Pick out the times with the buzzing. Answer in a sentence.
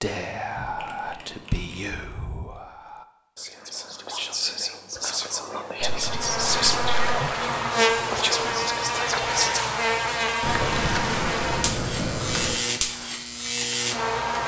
You can hear the buzzing from 6.0 to 14.4 s.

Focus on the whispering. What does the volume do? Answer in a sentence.
The loudness of the whispering goes down, then up.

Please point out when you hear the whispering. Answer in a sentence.
You can hear the whispering from 0.0 to 9.6 s.